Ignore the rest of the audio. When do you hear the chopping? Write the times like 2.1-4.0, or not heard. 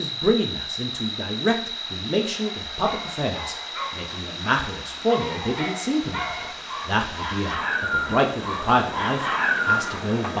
not heard.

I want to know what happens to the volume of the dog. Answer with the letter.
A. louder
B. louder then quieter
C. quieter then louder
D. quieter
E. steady
A.